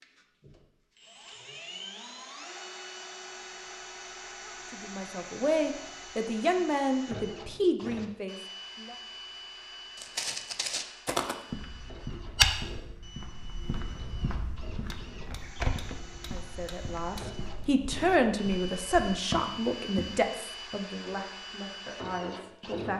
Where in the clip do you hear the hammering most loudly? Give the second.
17 s.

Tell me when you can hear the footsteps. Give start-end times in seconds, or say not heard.
9.9-20.2.